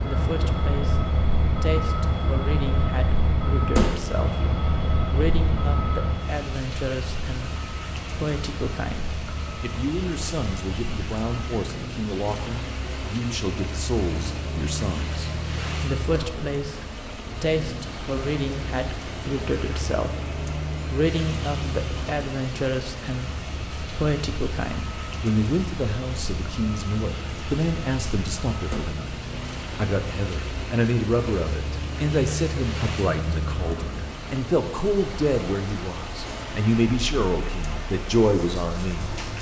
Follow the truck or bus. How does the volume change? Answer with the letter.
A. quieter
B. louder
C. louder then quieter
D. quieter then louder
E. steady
A.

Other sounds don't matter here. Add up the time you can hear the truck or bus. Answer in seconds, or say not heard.
39 s.